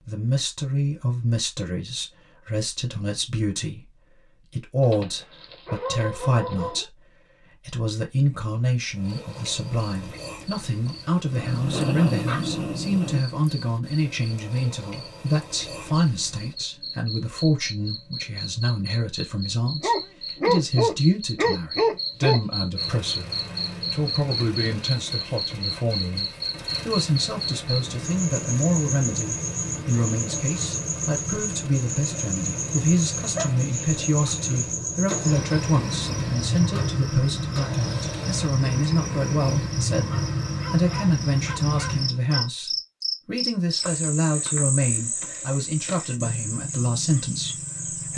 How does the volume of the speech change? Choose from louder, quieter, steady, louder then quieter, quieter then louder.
steady.